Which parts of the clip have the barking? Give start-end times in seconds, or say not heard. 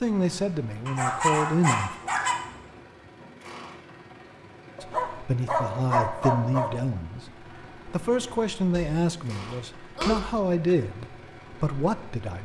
0.8-2.4, 4.8-6.7, 8.7-10.8.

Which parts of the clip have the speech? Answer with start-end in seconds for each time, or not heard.
0.0-1.9, 4.8-12.3.